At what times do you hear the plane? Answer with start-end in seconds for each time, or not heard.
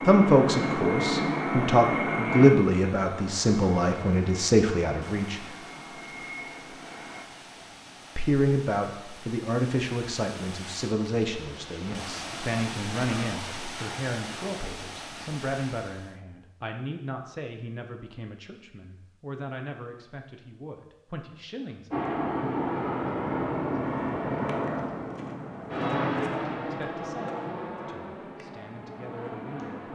0.0-7.2, 21.9-29.9.